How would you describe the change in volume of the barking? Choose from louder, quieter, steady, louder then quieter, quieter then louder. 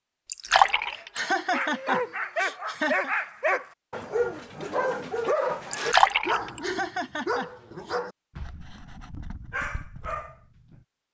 quieter.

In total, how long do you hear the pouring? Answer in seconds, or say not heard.
2 s.